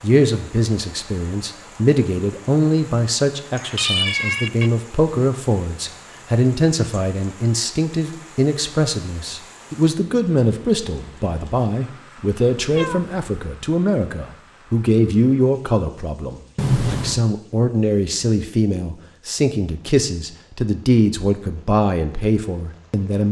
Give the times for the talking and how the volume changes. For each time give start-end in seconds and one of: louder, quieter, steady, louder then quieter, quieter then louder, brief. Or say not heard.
0.0-23.2 steady.